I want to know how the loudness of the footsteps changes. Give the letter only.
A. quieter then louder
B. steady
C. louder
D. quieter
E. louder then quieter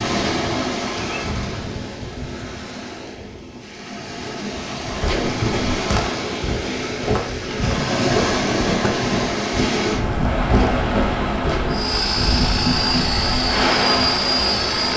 B.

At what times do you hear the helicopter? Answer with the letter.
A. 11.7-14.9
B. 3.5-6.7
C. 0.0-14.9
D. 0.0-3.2
A.